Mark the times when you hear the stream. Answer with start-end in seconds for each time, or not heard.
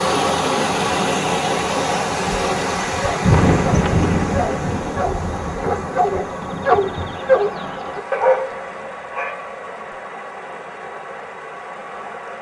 0.0-12.3.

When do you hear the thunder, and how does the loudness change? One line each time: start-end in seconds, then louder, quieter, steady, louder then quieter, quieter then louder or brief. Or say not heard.
3.0-7.2 quieter.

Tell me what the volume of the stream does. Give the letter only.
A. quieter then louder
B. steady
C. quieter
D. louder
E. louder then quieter
C.